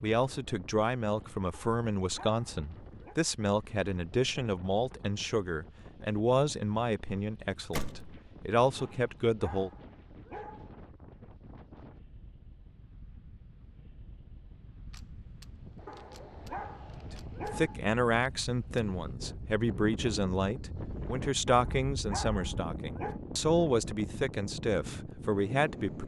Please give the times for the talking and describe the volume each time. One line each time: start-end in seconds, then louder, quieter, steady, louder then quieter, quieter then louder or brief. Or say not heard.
0.0-9.7 steady
17.6-26.0 steady.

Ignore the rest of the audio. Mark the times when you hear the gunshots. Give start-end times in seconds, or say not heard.
7.7-8.2, 14.9-17.5, 18.2-18.8.